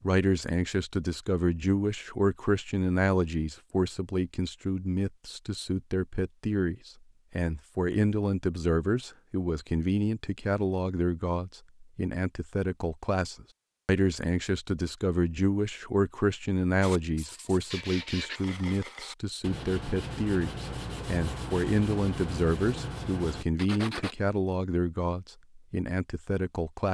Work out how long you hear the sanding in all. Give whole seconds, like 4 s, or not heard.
7 s.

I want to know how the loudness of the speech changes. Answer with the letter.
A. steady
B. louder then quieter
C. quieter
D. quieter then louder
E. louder
A.